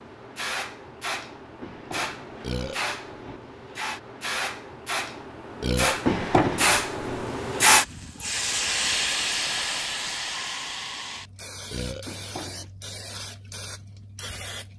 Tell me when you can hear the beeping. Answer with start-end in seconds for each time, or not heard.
not heard.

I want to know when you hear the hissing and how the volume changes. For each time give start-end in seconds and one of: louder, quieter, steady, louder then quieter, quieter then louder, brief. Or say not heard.
0.0-14.7 louder then quieter.